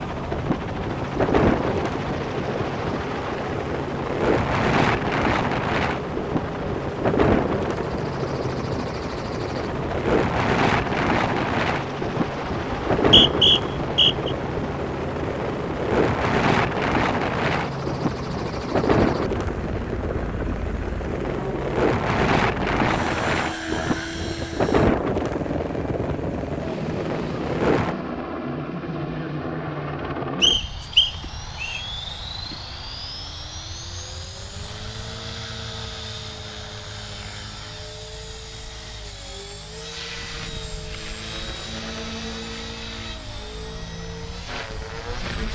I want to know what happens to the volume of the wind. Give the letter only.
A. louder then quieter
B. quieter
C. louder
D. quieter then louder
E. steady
E.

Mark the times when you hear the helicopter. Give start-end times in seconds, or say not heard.
0.0-45.5.